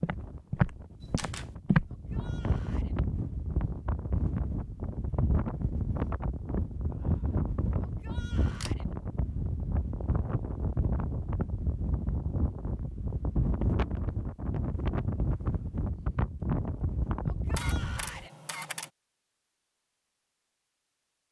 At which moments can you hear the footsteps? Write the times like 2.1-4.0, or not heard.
0.0-2.4.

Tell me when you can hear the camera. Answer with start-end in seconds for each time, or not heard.
1.0-1.5, 8.5-8.9, 17.5-18.9.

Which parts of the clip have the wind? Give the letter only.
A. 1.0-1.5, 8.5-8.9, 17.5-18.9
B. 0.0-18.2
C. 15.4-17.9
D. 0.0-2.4
B.